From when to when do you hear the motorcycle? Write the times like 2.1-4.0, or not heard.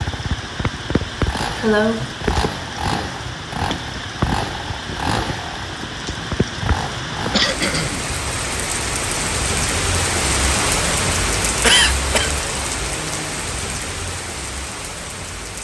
0.0-7.5.